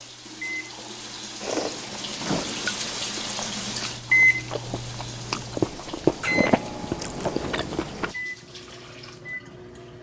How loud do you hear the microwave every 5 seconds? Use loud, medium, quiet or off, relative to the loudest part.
loud, medium.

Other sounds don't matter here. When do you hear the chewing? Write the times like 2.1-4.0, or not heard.
1.4-8.1.